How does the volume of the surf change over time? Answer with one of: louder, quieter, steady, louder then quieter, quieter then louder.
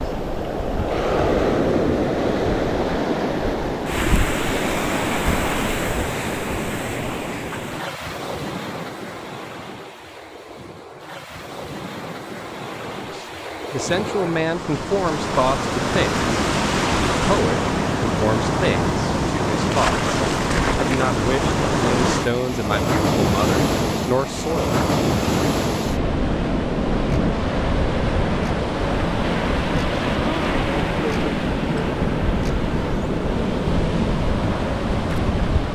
quieter then louder.